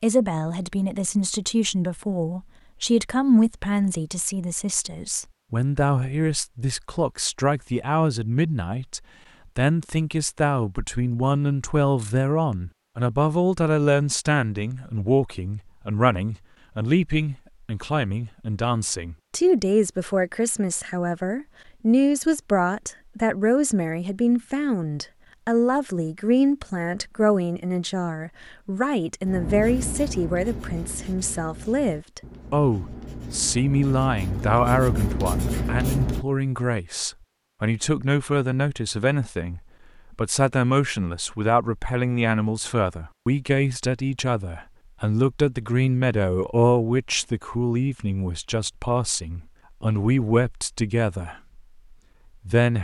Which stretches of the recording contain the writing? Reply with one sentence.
You can hear the writing from 29.2 to 36.2 s.